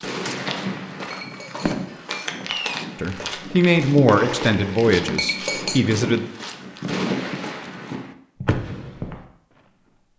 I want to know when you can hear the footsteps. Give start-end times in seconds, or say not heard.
0.0-9.2.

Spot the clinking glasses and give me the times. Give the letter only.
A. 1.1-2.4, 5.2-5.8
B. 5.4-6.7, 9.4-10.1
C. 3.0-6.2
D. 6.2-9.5
A.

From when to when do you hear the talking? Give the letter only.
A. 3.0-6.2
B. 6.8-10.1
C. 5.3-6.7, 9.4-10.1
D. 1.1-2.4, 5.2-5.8
A.